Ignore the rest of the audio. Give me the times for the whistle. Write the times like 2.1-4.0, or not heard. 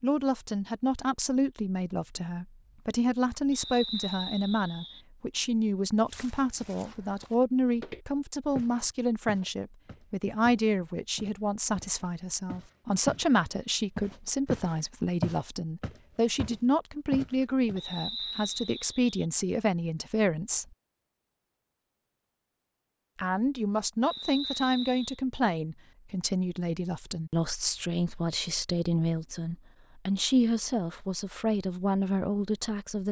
3.5-5.0, 17.8-19.2, 24.0-25.2.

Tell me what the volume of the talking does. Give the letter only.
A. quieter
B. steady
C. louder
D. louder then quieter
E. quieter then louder
B.